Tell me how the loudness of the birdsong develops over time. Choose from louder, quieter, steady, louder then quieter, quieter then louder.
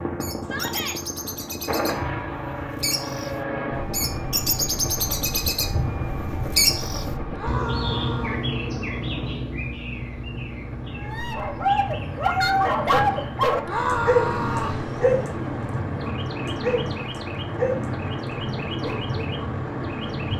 louder then quieter.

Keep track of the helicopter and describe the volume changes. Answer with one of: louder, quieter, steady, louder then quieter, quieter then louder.
quieter then louder.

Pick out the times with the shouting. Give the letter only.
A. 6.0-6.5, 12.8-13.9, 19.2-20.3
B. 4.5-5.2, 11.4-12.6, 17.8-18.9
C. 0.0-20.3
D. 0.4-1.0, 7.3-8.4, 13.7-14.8
D.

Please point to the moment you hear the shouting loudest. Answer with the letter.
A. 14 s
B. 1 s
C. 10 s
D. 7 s
A.